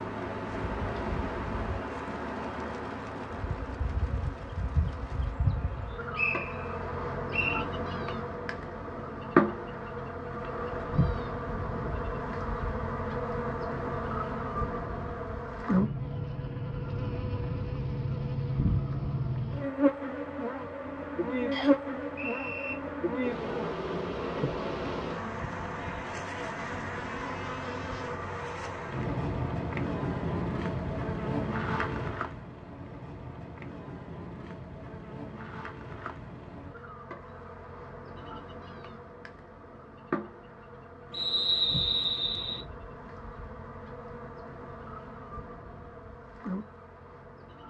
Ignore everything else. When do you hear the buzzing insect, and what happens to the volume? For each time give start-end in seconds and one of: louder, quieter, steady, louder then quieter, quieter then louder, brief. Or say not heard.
0.0-47.6 quieter.